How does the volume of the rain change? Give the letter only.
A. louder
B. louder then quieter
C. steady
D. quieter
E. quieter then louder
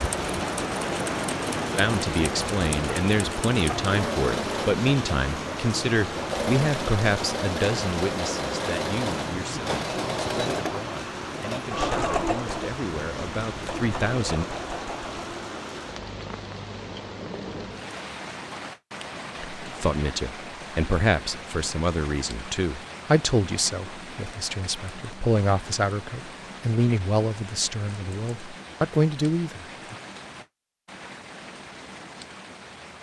D.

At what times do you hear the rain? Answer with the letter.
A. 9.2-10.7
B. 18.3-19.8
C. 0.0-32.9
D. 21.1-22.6
C.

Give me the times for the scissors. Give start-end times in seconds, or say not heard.
9.2-10.7.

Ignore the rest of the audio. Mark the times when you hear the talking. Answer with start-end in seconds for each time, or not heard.
1.8-14.4, 19.6-29.9.